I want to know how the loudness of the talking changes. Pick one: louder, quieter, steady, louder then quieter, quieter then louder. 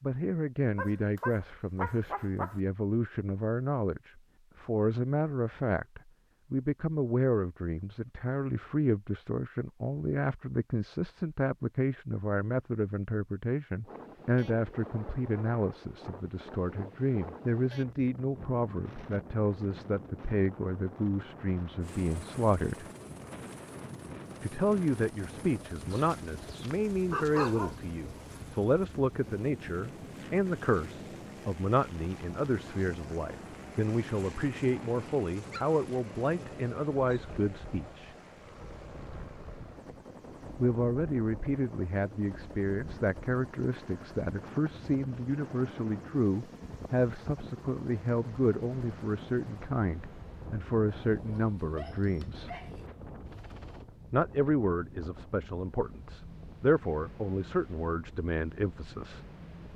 steady.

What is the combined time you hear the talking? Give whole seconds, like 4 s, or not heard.
54 s.